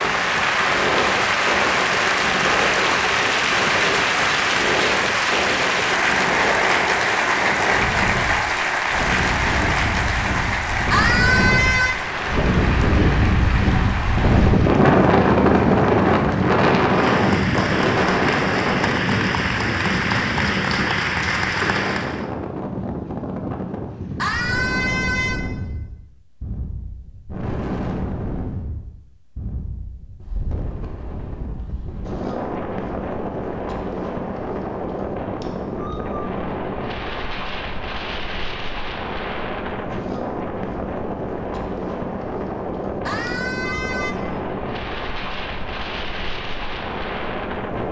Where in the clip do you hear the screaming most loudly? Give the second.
11 s.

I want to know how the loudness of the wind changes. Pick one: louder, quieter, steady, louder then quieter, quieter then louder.
louder then quieter.